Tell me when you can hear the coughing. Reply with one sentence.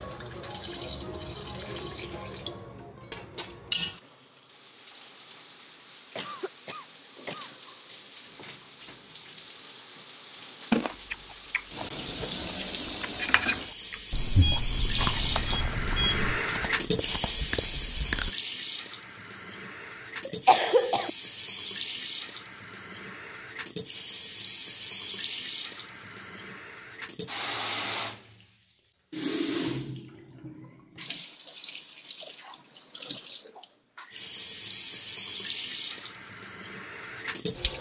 The coughing can be heard from 6.2 to 7.5 s and from 20.2 to 21.1 s.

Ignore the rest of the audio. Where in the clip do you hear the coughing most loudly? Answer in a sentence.
The loudest moment of the coughing is at 21 seconds.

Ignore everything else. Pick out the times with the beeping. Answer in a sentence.
You can hear the beeping from 14.1 to 16.4 s.